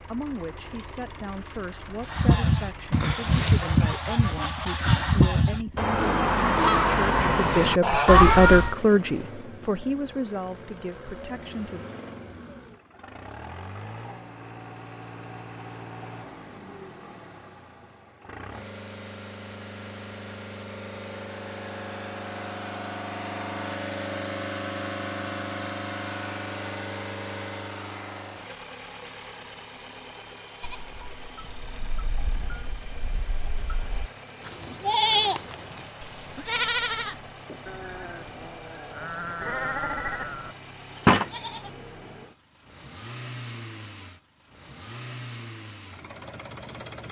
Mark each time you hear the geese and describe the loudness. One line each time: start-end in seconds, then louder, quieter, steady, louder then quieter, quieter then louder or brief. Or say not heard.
2.0-8.3 steady.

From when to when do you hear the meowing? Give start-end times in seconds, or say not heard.
8.1-8.8.